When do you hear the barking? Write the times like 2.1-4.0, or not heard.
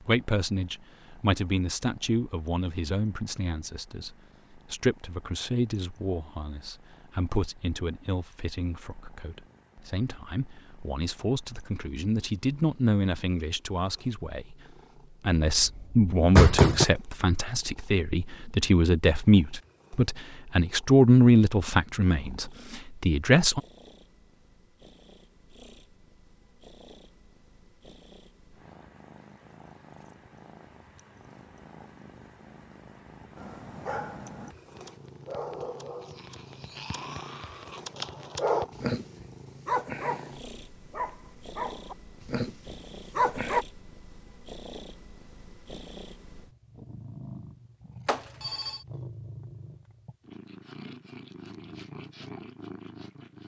33.4-43.6.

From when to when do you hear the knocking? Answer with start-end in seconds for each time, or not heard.
15.4-16.9.